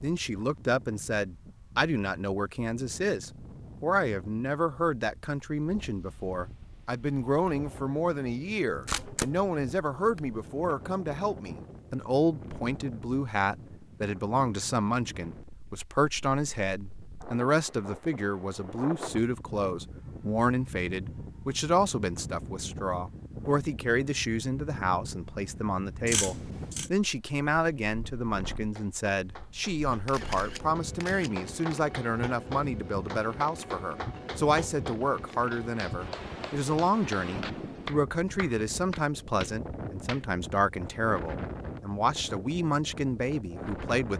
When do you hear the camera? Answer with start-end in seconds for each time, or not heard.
8.7-10.4, 26.1-26.9, 30.1-31.8.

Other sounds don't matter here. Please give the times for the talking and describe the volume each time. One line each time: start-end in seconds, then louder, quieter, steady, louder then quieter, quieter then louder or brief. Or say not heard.
0.0-44.1 steady.